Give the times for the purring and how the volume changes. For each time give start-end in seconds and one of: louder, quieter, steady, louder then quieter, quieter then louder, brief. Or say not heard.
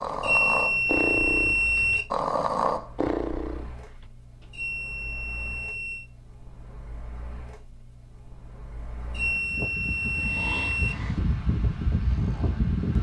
not heard.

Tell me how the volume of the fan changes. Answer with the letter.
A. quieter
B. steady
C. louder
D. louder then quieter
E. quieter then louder
C.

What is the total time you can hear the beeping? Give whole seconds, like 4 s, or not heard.
5 s.